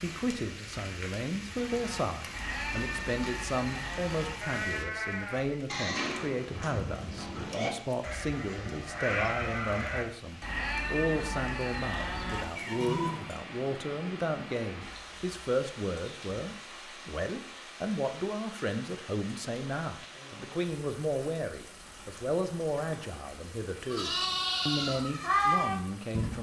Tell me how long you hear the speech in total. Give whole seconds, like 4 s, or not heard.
26 s.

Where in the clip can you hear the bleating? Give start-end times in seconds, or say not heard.
1.4-13.4, 23.9-26.3.